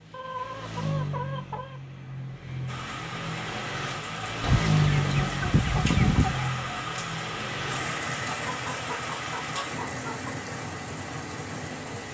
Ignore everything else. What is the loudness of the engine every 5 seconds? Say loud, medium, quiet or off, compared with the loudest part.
loud, loud, medium.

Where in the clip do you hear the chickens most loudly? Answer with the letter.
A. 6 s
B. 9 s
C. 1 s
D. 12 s
A.